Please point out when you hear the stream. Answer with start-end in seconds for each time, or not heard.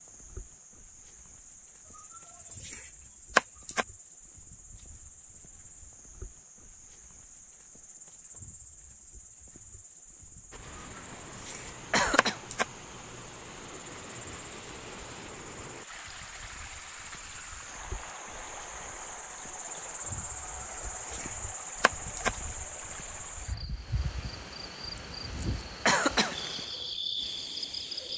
10.5-28.1.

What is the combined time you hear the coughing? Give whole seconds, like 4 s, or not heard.
3 s.